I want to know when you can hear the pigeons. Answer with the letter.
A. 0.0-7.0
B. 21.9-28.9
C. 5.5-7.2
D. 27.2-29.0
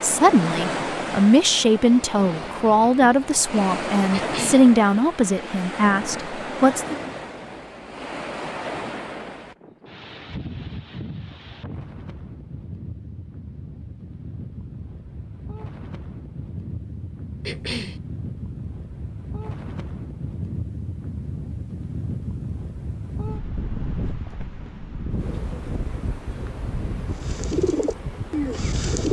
D.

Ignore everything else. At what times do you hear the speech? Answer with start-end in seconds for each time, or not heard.
0.0-7.0.